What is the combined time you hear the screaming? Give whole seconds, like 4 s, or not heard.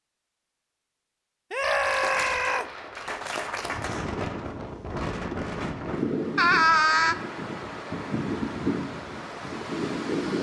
2 s.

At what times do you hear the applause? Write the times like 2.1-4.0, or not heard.
1.8-4.0.